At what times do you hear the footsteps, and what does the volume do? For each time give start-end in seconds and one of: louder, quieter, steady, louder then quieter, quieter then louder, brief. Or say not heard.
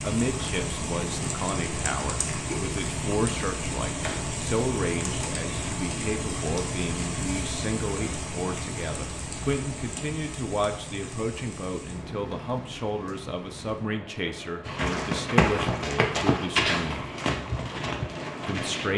14.7-18.9 quieter.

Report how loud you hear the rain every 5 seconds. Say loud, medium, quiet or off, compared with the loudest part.
loud, loud, medium, medium.